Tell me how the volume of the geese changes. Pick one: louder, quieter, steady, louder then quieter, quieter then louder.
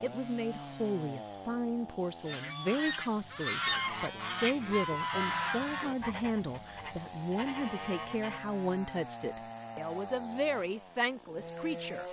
quieter.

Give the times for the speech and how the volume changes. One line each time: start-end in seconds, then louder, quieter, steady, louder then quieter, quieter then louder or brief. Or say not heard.
0.0-12.0 steady.